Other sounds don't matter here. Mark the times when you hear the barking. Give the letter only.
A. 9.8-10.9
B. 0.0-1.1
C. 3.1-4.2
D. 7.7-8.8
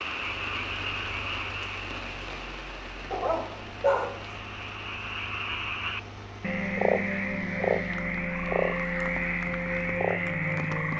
C.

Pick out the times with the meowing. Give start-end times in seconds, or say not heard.
not heard.